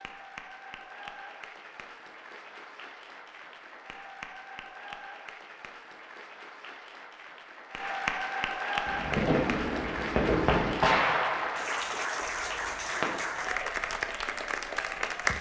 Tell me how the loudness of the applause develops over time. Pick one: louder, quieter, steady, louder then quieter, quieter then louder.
louder.